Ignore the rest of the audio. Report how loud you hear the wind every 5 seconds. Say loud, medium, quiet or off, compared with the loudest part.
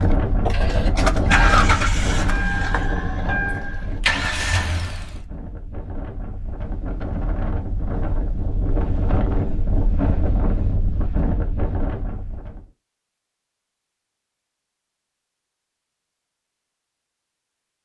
loud, loud, loud, off.